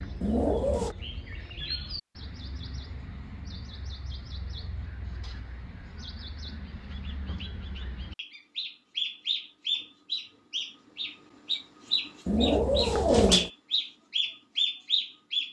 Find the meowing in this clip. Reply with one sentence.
You can hear the meowing from 0.2 to 0.9 s and from 12.2 to 13.5 s.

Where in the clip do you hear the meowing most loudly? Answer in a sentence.
The volume of the meowing peaks at 13 seconds.